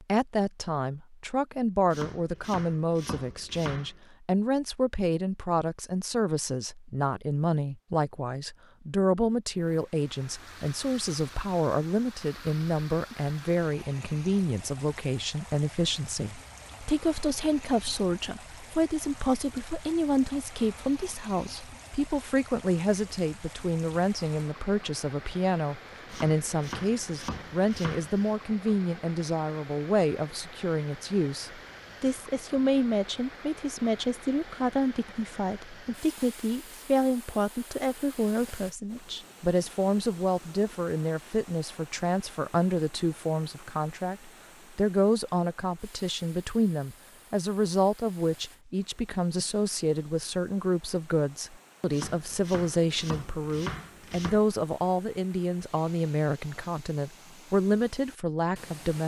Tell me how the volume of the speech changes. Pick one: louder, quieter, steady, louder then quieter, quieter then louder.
steady.